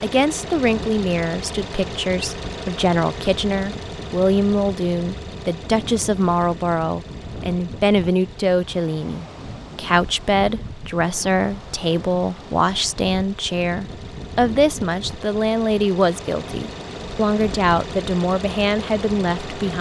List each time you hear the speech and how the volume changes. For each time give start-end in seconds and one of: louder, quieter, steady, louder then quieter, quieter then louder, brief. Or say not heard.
0.0-19.7 steady.